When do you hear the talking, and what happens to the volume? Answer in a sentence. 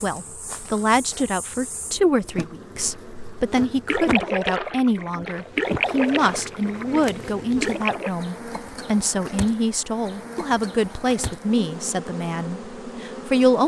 The talking can be heard from 0.0 to 13.6 s, at a steady volume.